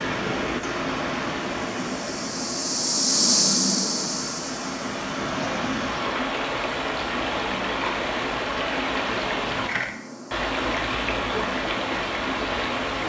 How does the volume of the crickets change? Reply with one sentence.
The volume of the crickets goes down.